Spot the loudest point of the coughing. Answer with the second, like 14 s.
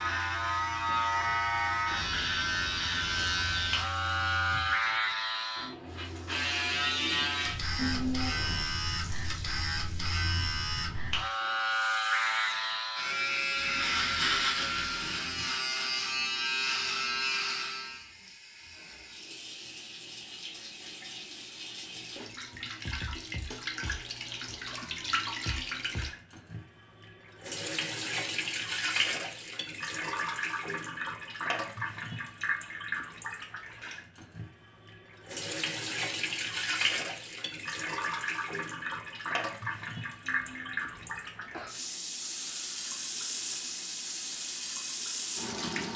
8 s.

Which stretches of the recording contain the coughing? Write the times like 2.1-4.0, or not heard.
7.8-8.7, 40.2-41.8.